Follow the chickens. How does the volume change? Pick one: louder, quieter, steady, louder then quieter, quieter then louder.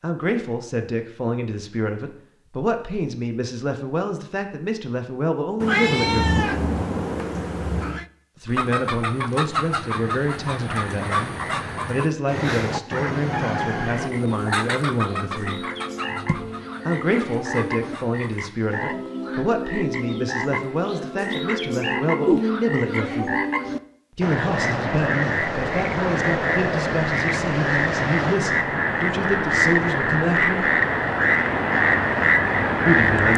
quieter.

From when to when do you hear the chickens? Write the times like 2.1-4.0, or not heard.
8.4-18.8.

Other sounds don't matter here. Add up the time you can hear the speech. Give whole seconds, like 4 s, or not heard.
27 s.